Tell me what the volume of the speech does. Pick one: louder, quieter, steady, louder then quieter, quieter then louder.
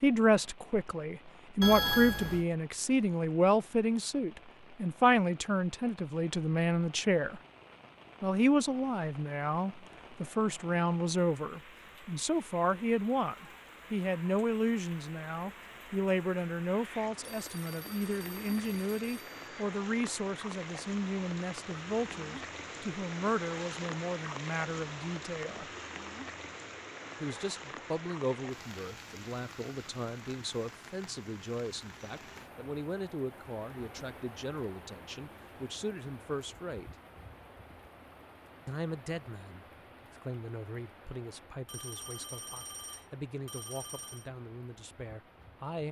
quieter.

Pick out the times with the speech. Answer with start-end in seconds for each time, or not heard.
0.0-7.4, 8.2-25.6, 27.2-36.9, 38.6-45.8.